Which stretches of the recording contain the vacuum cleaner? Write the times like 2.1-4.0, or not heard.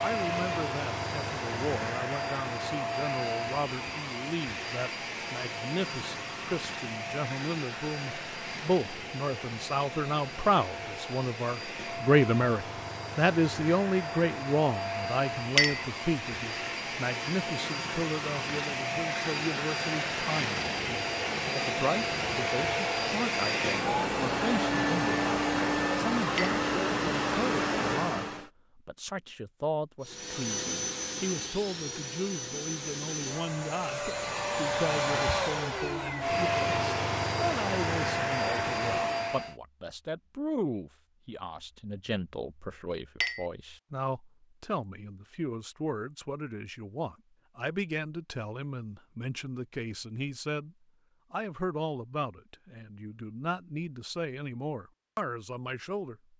0.0-28.5, 30.0-39.5.